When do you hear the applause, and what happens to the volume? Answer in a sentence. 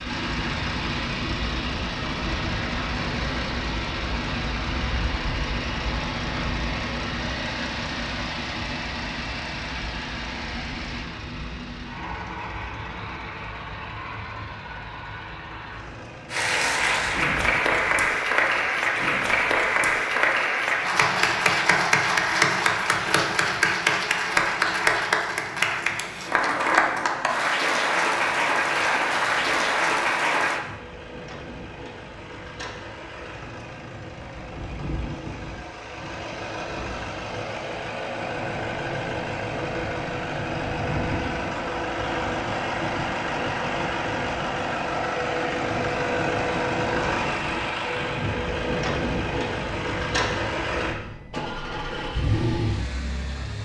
You can hear the applause from 16.3 to 30.6 s, at a steady volume.